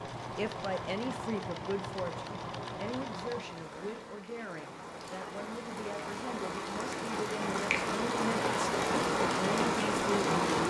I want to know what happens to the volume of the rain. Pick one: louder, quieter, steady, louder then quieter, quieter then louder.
louder.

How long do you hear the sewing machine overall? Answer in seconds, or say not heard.
4 s.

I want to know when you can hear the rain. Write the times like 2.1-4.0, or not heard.
0.0-10.6.